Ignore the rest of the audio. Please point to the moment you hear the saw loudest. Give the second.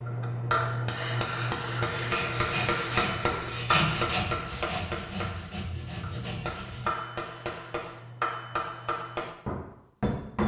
4 s.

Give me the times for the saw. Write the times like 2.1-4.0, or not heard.
1.8-7.0.